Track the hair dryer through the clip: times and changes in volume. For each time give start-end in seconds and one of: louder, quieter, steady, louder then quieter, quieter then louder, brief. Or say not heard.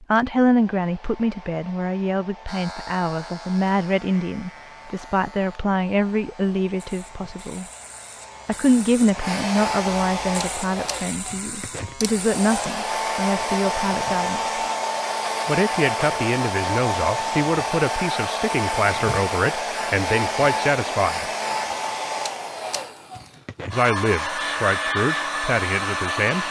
0.3-26.4 louder.